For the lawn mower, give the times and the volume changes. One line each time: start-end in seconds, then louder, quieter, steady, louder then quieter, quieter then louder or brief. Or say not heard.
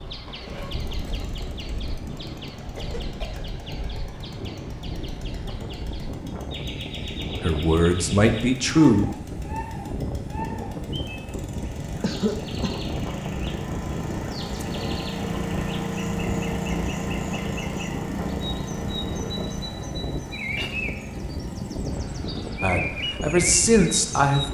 0.2-24.5 louder then quieter.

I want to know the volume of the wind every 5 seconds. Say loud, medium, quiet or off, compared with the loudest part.
medium, loud, loud, loud, loud.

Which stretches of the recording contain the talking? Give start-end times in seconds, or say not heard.
7.4-9.1, 22.6-24.5.